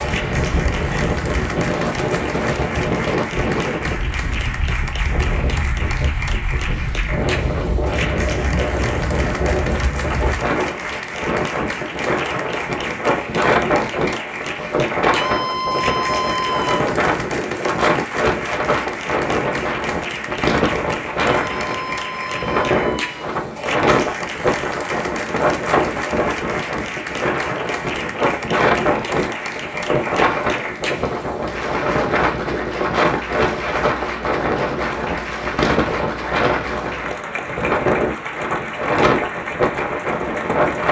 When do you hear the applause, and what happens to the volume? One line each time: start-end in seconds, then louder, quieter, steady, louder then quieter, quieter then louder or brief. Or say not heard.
0.0-40.8 steady.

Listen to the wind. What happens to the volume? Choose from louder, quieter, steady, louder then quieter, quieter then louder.
steady.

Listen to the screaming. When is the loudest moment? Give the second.
16 s.